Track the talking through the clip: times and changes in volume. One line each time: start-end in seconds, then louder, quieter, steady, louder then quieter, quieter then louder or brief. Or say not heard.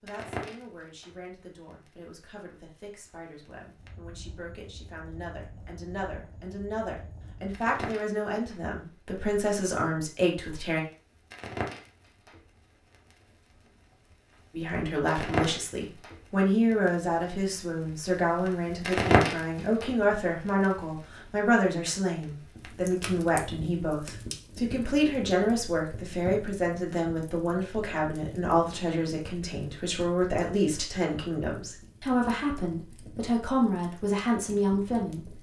0.0-10.8 louder
14.5-35.3 steady.